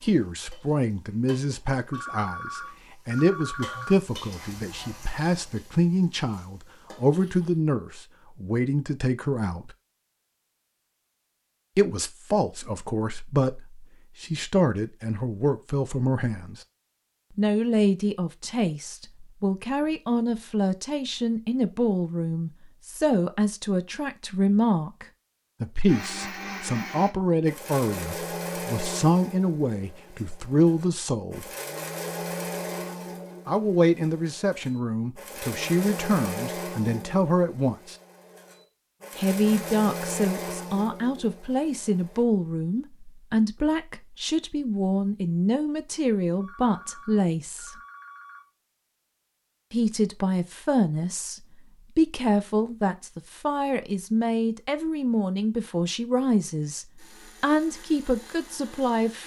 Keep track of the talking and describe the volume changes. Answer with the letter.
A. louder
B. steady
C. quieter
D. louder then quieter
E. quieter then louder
B.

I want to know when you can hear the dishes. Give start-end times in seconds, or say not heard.
not heard.